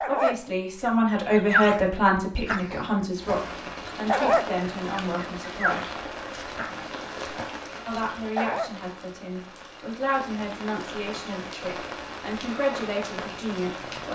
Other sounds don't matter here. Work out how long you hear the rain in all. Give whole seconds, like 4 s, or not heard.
11 s.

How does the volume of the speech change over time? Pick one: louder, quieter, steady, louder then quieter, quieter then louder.
quieter.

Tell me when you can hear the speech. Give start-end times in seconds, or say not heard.
0.0-5.8, 7.8-14.1.